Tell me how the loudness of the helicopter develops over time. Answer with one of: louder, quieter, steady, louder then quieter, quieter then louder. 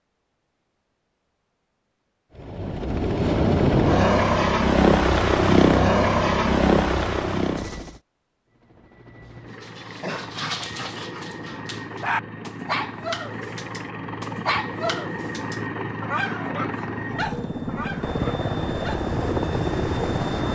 quieter then louder.